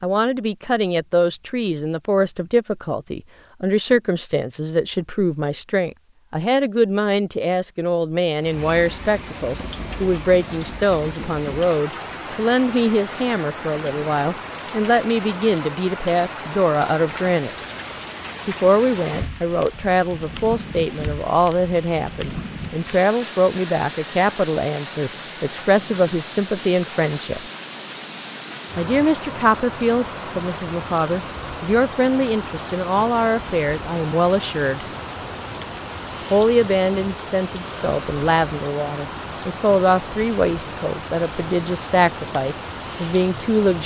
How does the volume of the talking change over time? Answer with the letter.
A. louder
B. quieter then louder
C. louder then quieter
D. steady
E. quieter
D.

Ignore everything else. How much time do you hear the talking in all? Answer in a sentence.
You can hear the talking for 40 seconds altogether.